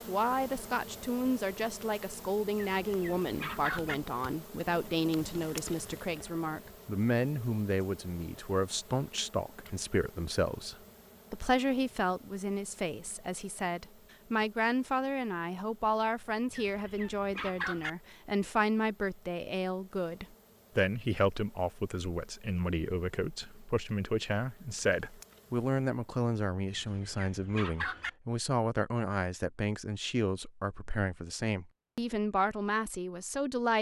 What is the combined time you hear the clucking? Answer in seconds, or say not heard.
4 s.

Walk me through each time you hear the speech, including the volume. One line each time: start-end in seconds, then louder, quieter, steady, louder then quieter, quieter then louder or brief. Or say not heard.
0.1-33.7 steady.